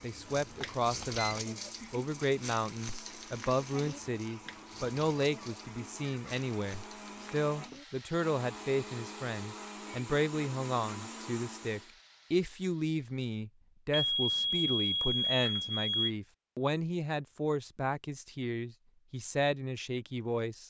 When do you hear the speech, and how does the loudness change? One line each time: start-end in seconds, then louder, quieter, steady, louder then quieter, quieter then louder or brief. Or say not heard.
0.0-20.6 steady.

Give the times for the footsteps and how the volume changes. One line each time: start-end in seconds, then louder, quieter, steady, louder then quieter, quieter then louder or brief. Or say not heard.
not heard.